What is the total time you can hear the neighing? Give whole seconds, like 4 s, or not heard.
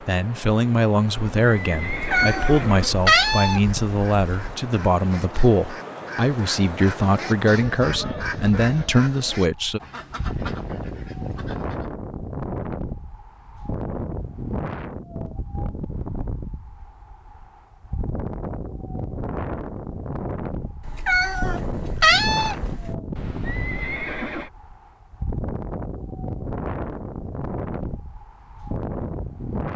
3 s.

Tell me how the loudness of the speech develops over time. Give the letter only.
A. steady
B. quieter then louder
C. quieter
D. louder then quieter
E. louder
A.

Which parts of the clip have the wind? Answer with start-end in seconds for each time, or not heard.
0.0-29.7.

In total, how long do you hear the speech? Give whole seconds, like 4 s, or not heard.
10 s.